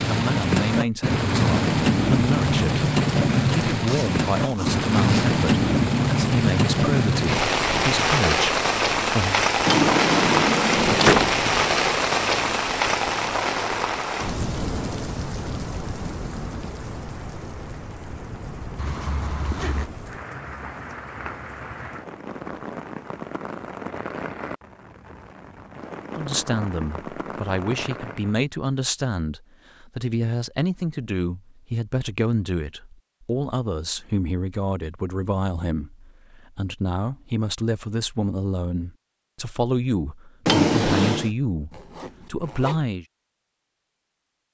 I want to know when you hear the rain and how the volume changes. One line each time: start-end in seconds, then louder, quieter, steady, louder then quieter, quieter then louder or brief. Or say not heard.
0.0-28.4 quieter.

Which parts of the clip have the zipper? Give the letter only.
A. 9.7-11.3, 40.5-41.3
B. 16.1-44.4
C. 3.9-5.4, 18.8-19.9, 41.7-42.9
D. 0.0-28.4
C.